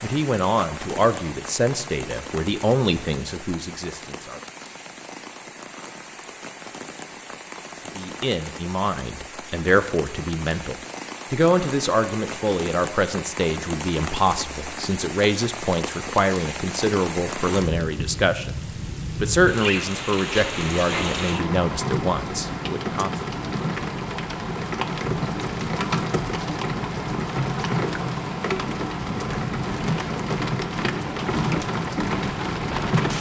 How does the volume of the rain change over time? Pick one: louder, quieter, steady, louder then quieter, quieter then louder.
louder.